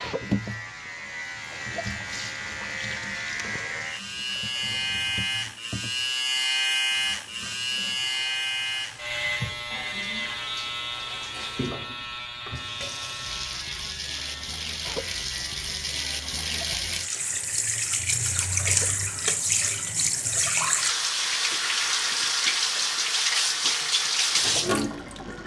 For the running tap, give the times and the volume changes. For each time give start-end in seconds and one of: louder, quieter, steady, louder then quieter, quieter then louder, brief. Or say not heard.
0.0-25.4 louder.